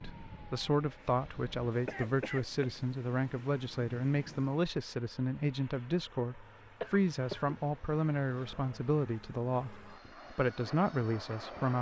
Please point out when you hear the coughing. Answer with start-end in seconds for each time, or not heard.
1.9-2.8, 6.8-8.0.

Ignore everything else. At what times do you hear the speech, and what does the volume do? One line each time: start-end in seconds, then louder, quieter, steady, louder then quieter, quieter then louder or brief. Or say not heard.
0.0-11.7 steady.